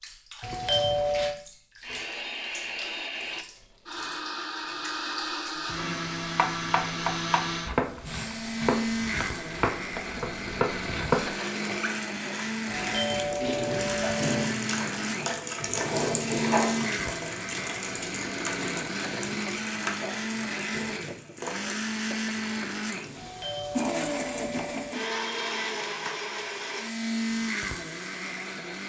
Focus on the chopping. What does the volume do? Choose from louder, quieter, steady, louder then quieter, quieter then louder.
steady.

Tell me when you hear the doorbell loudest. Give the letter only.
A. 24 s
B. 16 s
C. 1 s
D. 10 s
C.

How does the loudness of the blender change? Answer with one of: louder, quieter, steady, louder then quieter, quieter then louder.
steady.